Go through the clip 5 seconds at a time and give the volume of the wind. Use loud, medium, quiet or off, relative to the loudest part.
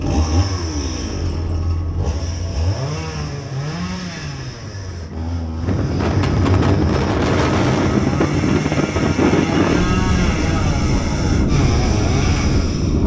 quiet, loud, loud.